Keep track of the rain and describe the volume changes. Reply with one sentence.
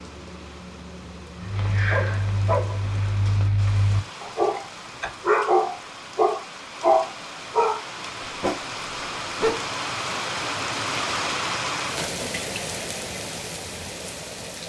The loudness of the rain goes up.